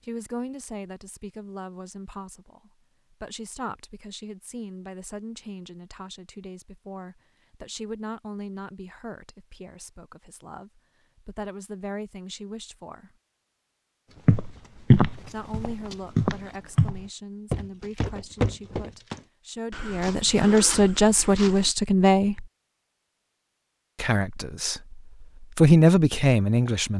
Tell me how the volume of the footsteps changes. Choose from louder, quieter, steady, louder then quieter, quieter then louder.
quieter.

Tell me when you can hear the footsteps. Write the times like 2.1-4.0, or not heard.
14.2-21.8.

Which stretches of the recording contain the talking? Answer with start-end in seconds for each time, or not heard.
0.0-13.1, 15.3-22.4, 24.0-24.8, 25.6-26.9.